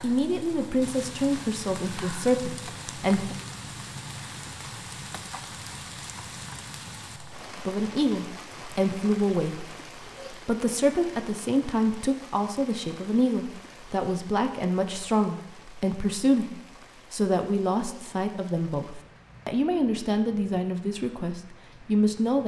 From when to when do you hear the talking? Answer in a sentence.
You can hear the talking from 0.0 to 3.4 s and from 7.5 to 22.4 s.